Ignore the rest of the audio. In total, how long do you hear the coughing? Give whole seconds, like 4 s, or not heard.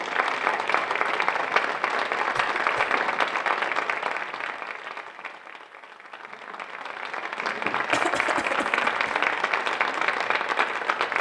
2 s.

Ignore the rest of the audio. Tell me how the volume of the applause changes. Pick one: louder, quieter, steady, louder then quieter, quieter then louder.
quieter then louder.